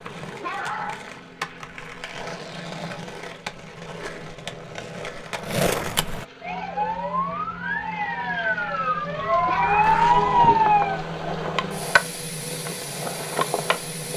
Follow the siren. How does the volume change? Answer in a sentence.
The volume of the siren goes up.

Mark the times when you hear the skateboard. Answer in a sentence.
You can hear the skateboard from 0.0 to 6.2 s and from 9.8 to 14.1 s.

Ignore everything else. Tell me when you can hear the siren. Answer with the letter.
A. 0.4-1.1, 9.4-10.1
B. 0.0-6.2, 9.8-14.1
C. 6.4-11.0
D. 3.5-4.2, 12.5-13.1
C.